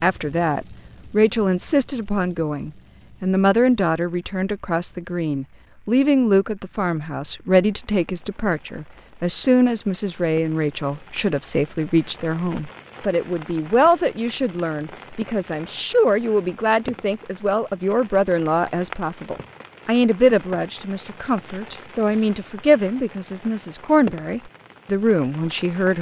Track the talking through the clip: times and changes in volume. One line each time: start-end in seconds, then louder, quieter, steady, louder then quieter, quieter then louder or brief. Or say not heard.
0.0-25.9 steady.